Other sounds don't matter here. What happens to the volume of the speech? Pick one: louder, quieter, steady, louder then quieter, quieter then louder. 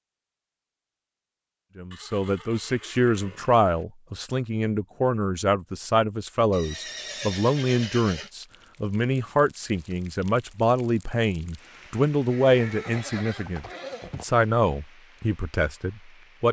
steady.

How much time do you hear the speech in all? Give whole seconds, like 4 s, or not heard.
15 s.